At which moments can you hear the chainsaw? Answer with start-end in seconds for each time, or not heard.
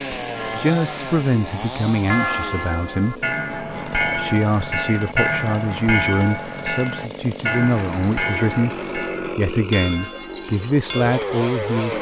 0.0-11.9.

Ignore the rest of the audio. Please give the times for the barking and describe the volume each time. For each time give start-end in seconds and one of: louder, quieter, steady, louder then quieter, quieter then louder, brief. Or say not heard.
not heard.